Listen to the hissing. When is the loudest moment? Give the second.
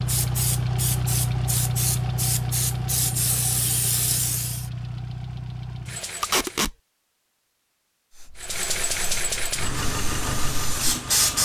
11 s.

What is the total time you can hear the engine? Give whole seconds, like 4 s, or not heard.
10 s.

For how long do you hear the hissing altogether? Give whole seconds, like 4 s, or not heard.
8 s.